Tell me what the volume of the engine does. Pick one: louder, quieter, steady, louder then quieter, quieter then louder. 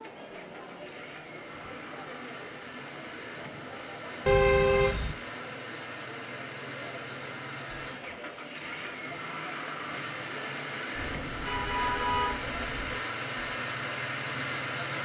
louder.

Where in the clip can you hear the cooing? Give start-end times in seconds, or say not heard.
not heard.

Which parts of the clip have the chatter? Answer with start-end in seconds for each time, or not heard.
0.0-14.9.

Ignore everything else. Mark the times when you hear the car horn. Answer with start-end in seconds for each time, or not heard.
4.2-5.2, 10.9-12.9.